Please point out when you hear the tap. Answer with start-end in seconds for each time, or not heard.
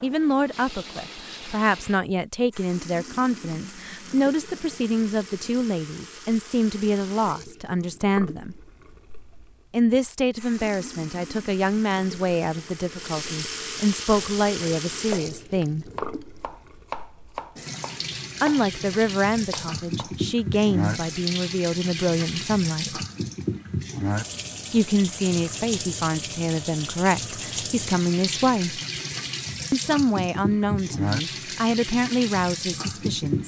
0.0-33.4.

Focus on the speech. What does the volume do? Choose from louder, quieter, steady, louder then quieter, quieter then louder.
steady.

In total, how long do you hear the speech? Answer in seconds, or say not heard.
27 s.